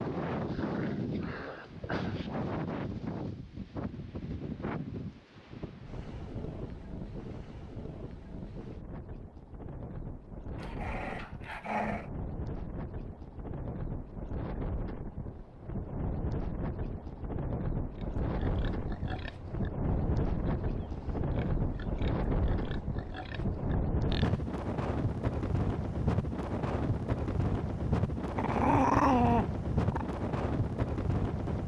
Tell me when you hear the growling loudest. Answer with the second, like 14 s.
29 s.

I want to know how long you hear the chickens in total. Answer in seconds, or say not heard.
not heard.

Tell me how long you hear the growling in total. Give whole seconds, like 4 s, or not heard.
5 s.